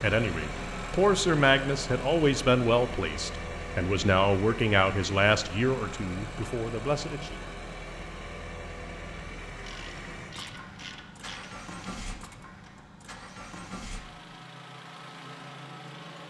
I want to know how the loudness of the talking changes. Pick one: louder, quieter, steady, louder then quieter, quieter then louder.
quieter.